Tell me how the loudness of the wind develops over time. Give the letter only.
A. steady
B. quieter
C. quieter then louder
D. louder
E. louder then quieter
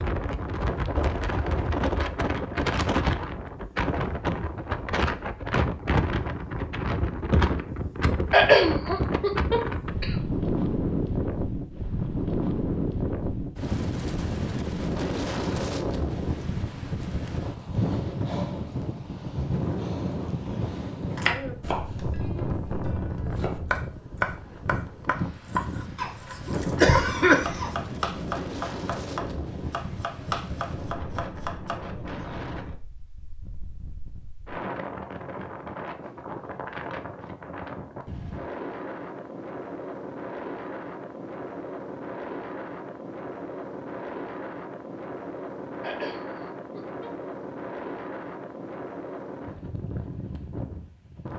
B.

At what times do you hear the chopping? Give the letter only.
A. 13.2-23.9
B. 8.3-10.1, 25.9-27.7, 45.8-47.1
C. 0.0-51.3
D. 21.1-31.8
D.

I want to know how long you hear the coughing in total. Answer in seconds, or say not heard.
5 s.